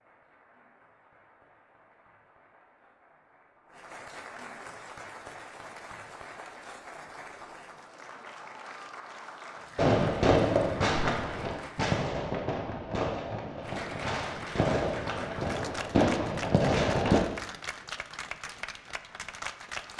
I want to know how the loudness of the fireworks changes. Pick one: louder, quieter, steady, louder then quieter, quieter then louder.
quieter then louder.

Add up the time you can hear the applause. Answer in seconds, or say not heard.
18 s.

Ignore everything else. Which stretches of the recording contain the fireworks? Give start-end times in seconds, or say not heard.
9.8-17.2.